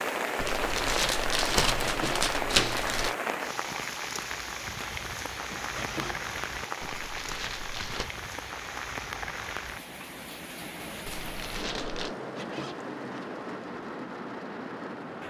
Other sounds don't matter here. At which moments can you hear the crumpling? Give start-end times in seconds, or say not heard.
0.3-3.1, 6.8-8.1, 11.1-12.2.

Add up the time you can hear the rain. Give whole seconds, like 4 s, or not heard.
15 s.